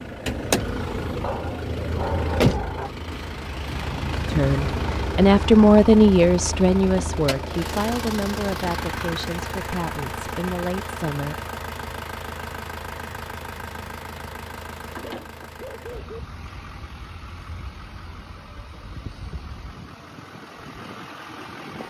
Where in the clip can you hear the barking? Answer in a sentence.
The barking can be heard from 1.2 to 2.9 s and from 14.9 to 16.2 s.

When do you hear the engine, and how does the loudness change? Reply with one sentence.
The engine can be heard from 0.0 to 21.8 s, getting quieter.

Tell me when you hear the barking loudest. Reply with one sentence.
The loudest moment of the barking is at 2 seconds.